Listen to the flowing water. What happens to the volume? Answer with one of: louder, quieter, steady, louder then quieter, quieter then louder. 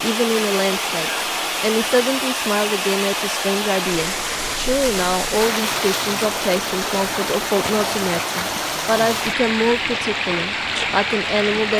steady.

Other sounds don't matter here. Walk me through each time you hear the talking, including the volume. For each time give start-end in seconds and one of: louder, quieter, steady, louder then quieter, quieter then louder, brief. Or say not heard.
0.0-11.7 steady.